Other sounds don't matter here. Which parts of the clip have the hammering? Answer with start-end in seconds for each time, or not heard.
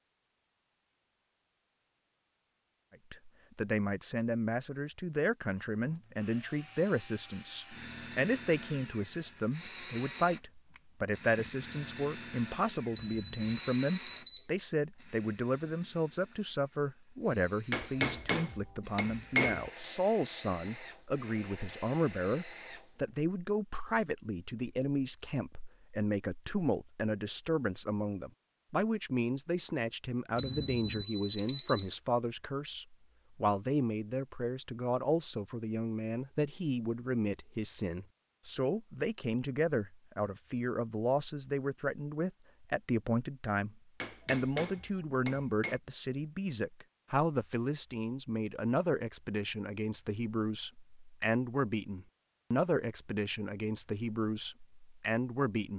17.7-19.7, 44.0-45.8.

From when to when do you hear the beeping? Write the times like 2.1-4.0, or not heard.
12.9-14.4, 30.4-31.9.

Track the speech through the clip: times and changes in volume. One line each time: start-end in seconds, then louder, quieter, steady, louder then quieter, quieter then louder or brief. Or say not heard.
3.1-55.7 steady.